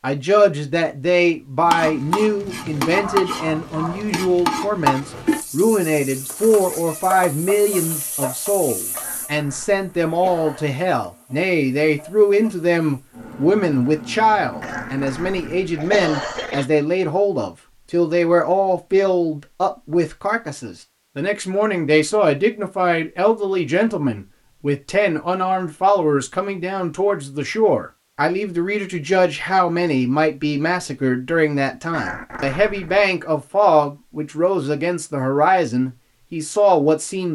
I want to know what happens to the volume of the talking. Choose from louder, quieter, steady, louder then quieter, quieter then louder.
steady.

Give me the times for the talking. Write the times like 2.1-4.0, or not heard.
0.0-37.3.